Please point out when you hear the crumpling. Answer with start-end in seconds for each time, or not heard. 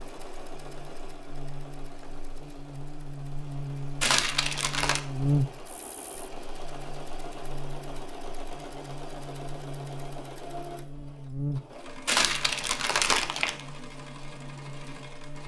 4.0-5.0, 12.1-13.6.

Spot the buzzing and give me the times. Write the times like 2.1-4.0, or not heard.
0.0-15.4.